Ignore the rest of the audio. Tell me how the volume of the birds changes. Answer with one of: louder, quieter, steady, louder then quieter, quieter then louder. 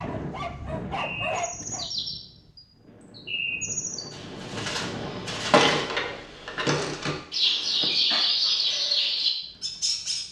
louder.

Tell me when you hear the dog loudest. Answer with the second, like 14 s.
1 s.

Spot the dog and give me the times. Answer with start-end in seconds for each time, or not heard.
0.0-1.9.